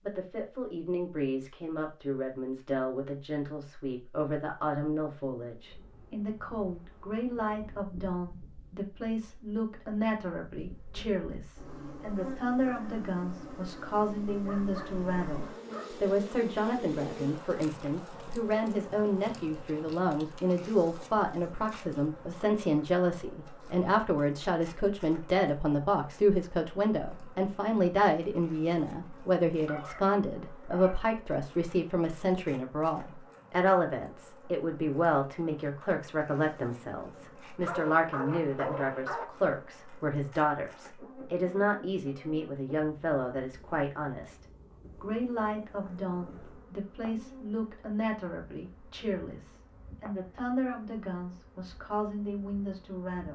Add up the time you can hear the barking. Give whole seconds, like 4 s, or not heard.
5 s.